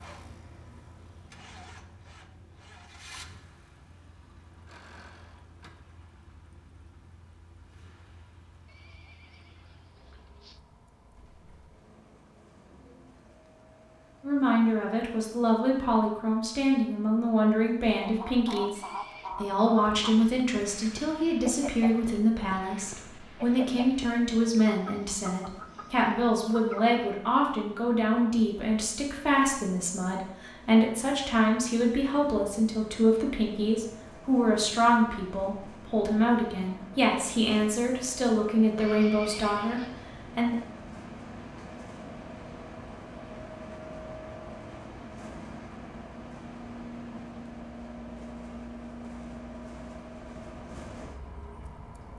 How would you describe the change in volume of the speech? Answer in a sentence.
The loudness of the speech stays about the same.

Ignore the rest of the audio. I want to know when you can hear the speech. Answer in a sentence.
You can hear the speech from 14.2 to 40.5 s.